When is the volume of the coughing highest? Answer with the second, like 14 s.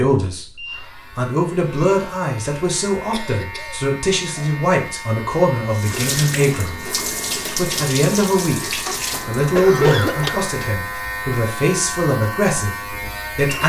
10 s.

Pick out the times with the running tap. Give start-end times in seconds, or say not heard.
5.7-10.4.